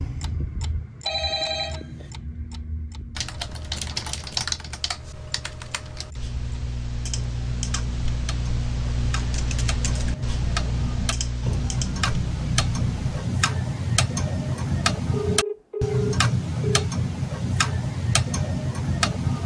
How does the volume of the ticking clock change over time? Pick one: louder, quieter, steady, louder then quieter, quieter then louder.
louder.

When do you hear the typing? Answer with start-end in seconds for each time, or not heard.
3.1-13.2.